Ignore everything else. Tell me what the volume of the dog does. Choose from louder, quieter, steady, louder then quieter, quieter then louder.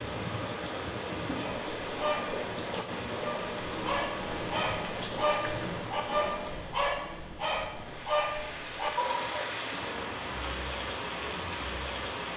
steady.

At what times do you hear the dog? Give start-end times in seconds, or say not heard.
1.4-9.5.